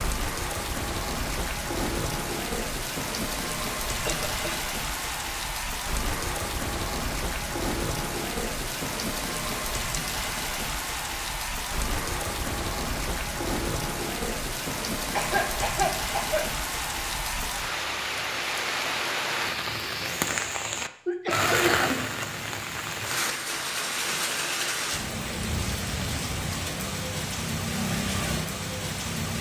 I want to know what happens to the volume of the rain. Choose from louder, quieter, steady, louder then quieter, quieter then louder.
steady.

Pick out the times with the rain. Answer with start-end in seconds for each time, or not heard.
0.0-29.3.